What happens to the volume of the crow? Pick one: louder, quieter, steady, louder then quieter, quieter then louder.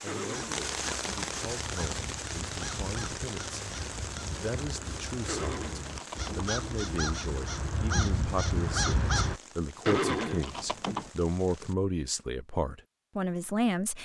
louder.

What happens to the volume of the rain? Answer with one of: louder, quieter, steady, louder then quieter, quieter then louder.
quieter.